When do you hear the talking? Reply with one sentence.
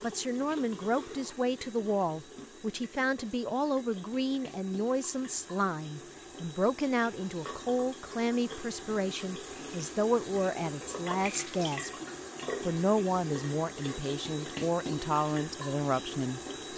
The talking can be heard from 0.0 to 11.9 s and from 12.6 to 16.7 s.